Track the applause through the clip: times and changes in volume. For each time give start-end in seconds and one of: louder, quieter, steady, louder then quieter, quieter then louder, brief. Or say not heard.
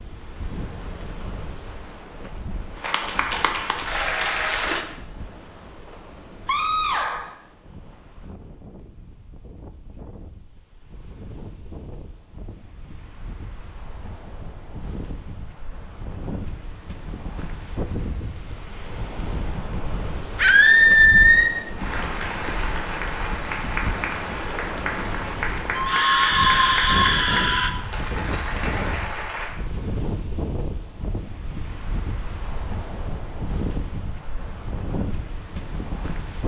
2.8-4.8 brief
21.8-29.5 steady.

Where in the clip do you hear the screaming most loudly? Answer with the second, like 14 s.
21 s.